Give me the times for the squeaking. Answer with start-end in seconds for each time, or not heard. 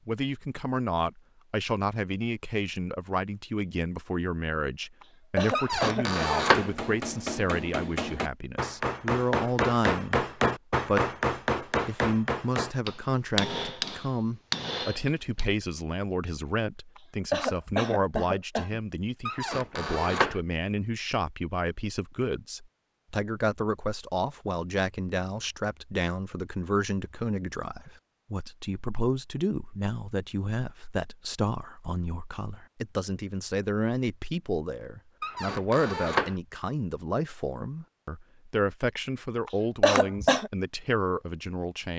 5.5-6.7, 19.2-20.4, 35.2-36.4.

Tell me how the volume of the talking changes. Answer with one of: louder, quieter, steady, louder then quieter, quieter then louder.
steady.